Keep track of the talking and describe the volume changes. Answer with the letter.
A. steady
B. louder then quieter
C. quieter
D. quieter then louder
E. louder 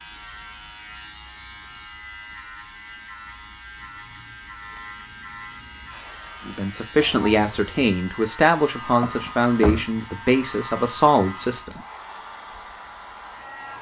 A.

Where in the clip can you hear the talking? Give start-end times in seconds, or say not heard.
6.5-11.8.